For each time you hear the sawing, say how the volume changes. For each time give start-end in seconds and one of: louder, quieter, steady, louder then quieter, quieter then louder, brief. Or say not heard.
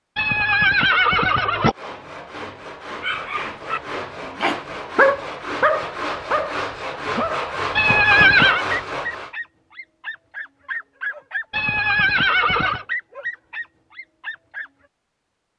1.6-9.3 louder.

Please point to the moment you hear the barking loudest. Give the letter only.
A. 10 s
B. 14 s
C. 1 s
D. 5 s
D.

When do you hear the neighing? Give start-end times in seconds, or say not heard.
0.1-1.8, 7.8-8.7, 11.5-12.8.